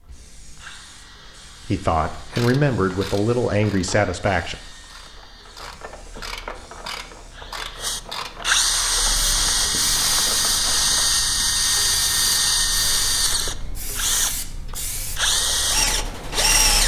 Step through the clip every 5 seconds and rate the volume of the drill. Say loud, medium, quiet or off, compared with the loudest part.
quiet, loud, loud, loud.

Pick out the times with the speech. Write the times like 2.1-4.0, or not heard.
1.6-4.5.